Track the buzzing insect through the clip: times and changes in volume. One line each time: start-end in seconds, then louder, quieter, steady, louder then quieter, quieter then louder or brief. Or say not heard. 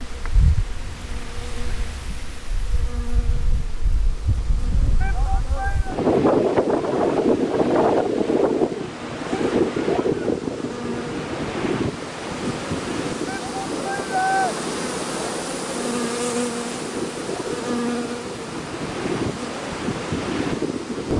0.0-21.1 louder.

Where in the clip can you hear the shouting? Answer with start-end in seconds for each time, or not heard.
5.0-6.0, 13.2-14.6.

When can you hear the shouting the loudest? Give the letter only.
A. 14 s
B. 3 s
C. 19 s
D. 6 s
A.